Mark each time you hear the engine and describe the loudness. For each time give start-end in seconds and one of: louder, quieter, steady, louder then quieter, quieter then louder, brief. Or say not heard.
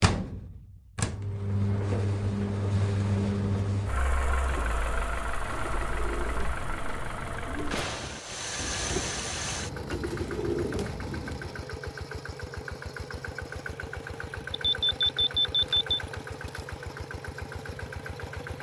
0.0-18.5 quieter.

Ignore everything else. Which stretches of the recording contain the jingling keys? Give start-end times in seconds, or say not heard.
not heard.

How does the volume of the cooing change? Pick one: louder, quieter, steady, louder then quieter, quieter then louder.
louder.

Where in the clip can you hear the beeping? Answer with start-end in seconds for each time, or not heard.
14.6-16.0.